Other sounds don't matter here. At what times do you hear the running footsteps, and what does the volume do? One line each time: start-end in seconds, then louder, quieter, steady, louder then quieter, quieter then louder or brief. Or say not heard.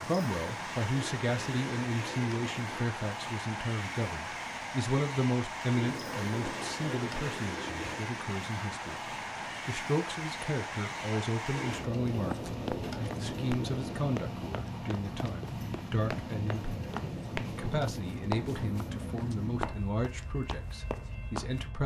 12.2-21.6 quieter then louder.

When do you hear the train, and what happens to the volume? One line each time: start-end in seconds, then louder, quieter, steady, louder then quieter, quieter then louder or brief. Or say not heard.
0.0-21.8 steady.